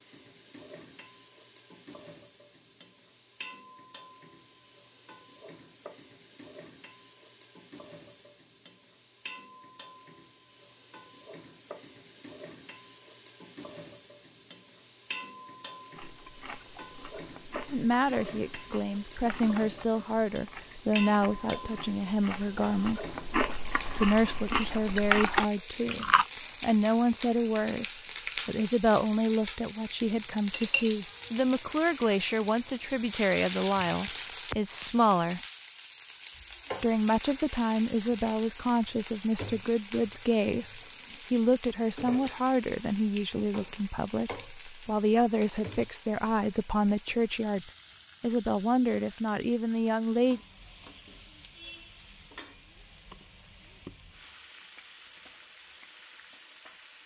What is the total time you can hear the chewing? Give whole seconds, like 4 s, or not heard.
10 s.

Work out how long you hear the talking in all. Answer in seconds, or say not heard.
30 s.